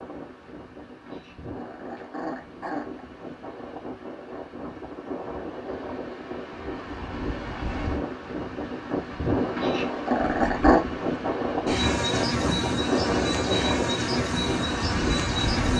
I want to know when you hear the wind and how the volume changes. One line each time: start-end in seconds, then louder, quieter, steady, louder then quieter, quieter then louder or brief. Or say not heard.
0.0-15.7 louder.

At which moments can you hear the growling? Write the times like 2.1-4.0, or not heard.
1.1-3.0, 9.6-10.8.